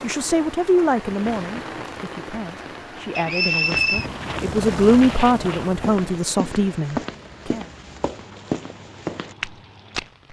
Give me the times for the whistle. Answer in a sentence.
The whistle can be heard from 3.1 to 4.0 s.